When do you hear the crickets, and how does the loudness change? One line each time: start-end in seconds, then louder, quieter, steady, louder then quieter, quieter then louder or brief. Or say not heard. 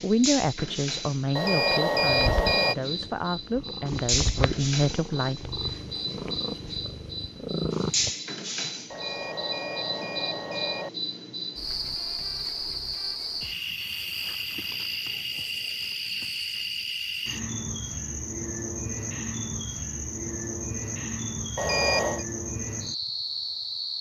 0.0-23.9 steady.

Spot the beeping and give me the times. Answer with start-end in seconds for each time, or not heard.
1.4-2.8, 8.9-10.9, 21.6-22.2.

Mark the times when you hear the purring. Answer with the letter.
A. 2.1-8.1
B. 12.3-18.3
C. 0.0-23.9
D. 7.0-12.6
A.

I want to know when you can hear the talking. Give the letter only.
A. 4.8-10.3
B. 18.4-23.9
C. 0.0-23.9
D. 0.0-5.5
D.